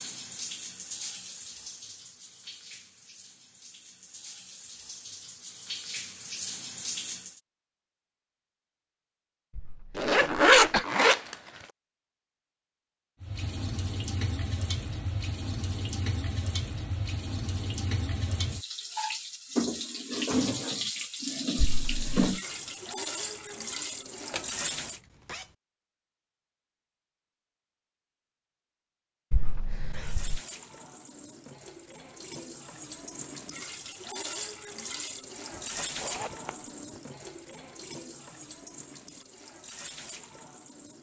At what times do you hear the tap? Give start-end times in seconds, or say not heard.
0.0-7.4, 13.2-25.0, 30.0-40.9.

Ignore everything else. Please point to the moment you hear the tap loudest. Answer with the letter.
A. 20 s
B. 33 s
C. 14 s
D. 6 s
A.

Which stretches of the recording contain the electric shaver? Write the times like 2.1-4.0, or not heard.
not heard.